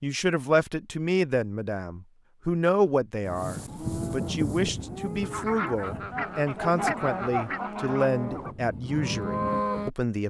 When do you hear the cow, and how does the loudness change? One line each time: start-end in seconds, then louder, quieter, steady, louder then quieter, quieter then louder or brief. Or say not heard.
3.2-9.9 quieter then louder.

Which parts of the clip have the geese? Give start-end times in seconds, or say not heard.
5.2-8.6.